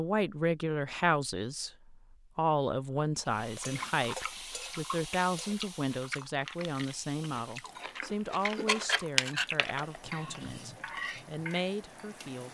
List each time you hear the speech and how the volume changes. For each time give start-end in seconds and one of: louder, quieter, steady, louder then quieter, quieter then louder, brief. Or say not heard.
0.0-12.4 quieter.